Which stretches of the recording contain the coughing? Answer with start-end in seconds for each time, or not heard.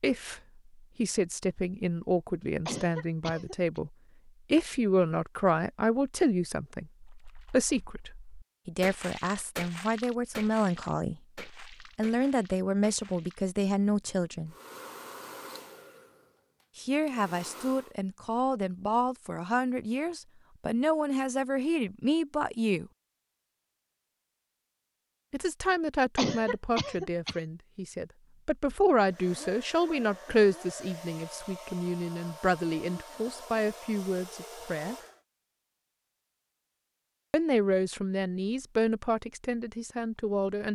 2.6-3.8, 26.1-27.4.